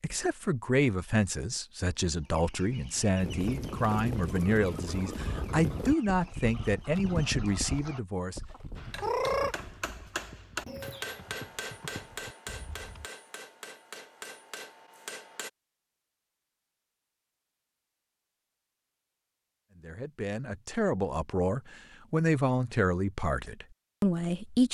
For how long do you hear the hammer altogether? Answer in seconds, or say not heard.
7 s.